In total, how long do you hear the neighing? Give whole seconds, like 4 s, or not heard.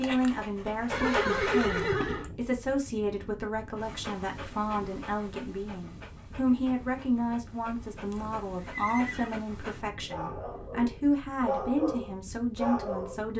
3 s.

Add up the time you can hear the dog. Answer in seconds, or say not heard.
11 s.